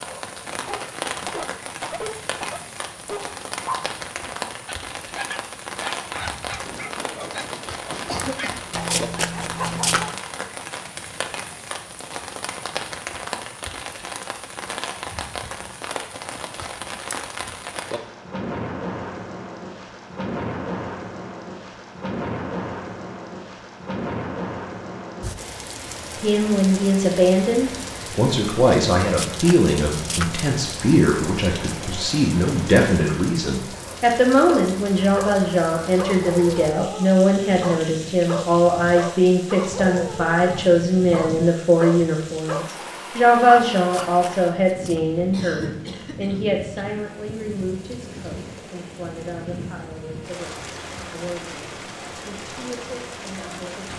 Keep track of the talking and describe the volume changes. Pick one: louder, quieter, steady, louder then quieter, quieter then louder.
quieter.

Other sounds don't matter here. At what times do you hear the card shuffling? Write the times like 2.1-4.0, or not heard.
8.7-10.2, 29.0-30.5, 43.8-45.0.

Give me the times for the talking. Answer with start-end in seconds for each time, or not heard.
26.2-53.9.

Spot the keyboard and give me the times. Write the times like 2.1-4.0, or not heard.
not heard.